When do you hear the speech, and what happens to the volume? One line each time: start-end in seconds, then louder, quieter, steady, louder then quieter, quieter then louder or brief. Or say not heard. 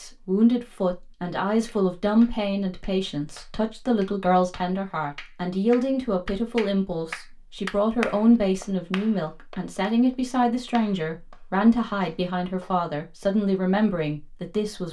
0.0-14.8 steady.